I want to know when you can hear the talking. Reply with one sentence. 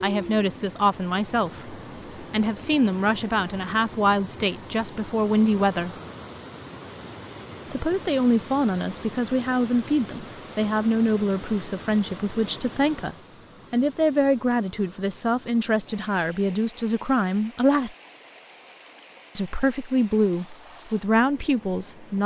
You can hear the talking from 0.0 to 6.0 s, from 7.7 to 17.9 s and from 19.4 to 22.2 s.